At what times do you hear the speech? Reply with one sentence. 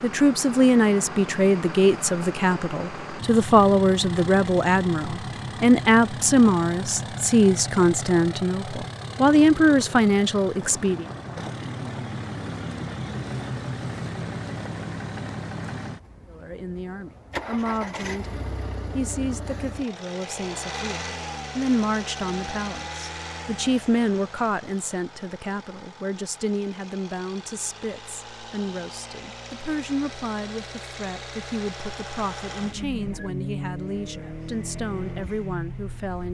The speech can be heard from 0.0 to 11.1 s and from 16.2 to 36.2 s.